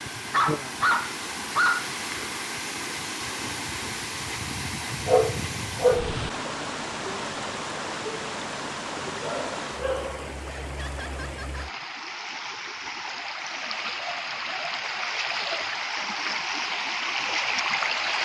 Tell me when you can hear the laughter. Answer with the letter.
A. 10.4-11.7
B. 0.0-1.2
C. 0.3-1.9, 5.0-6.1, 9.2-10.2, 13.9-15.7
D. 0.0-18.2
A.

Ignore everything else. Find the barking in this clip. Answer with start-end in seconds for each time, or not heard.
0.3-1.9, 5.0-6.1, 9.2-10.2, 13.9-15.7.